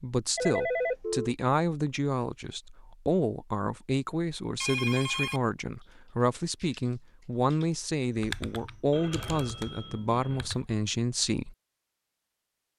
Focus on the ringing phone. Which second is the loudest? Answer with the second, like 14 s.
1 s.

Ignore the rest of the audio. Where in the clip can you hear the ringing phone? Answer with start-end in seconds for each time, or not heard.
0.3-1.4, 4.6-5.4, 8.9-10.5.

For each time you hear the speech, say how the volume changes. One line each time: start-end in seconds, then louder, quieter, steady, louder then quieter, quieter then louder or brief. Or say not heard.
0.0-11.6 steady.